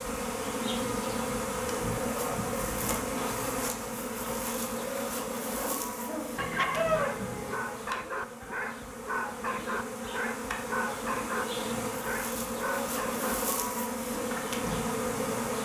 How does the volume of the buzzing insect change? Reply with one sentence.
The volume of the buzzing insect goes down, then up.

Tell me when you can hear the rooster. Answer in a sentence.
The rooster can be heard from 6.3 to 7.5 s.